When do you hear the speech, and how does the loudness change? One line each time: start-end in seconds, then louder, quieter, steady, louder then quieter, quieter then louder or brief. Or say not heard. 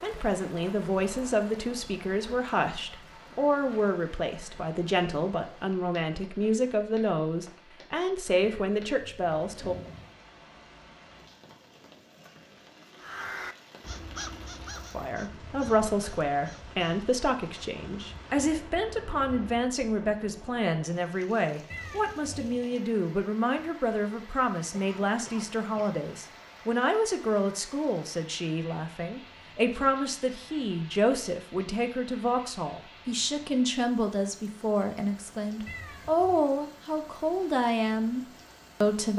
0.0-9.8 steady
14.9-39.1 steady.